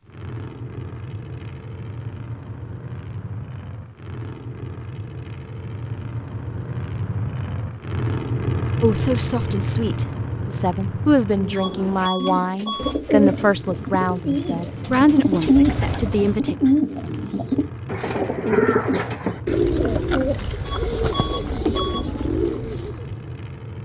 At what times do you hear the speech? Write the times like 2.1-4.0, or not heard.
8.8-16.6.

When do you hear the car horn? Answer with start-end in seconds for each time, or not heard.
not heard.